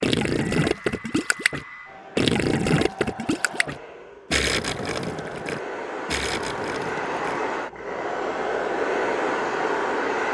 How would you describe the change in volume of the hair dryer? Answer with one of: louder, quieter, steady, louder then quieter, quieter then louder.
louder.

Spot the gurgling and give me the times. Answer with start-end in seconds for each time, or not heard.
0.0-7.4.